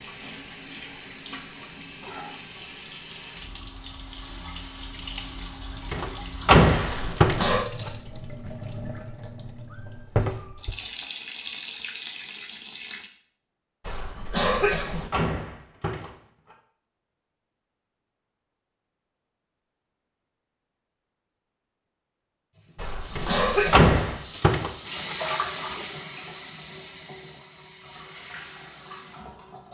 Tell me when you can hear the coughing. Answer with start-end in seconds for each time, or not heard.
6.9-7.7, 13.8-15.1, 22.8-23.9.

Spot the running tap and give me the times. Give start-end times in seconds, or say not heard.
0.0-13.1, 22.6-29.6.